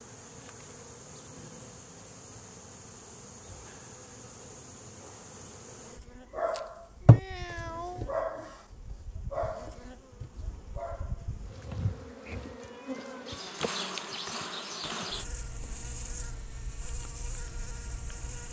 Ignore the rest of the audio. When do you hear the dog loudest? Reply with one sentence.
The loudest moment of the dog is at 7 seconds.